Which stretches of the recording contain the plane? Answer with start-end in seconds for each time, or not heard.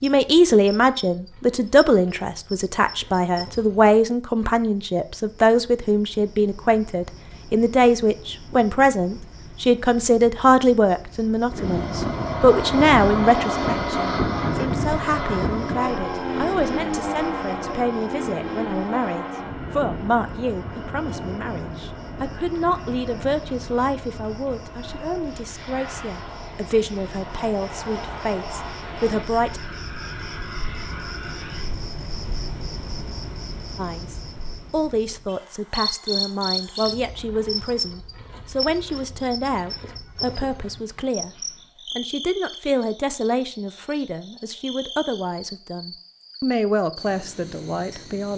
11.4-31.8.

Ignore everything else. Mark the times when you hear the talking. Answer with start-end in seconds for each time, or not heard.
0.0-29.6, 33.8-41.4, 42.0-48.3.